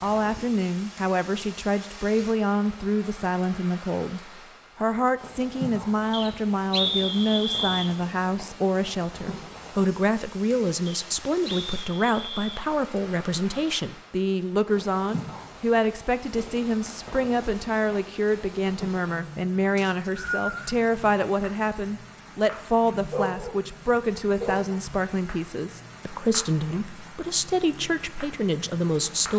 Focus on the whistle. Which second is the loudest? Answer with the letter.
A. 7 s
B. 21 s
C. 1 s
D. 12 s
A.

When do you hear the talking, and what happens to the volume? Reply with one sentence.
The talking can be heard from 0.0 to 29.3 s, at a steady volume.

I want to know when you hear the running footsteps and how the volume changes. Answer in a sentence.
You can't hear the running footsteps here.